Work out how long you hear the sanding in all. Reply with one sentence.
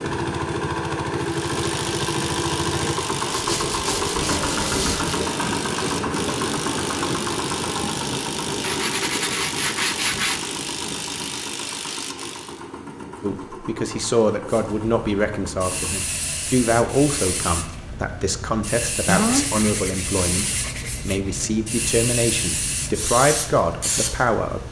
You can hear the sanding for 6 seconds altogether.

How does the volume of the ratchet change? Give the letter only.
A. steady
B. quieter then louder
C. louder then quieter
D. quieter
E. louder
A.